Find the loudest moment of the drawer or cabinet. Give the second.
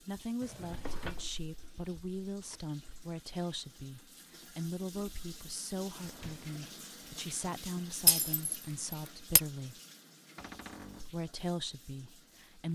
1 s.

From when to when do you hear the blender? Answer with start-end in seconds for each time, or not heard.
not heard.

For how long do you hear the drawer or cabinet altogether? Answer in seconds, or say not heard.
4 s.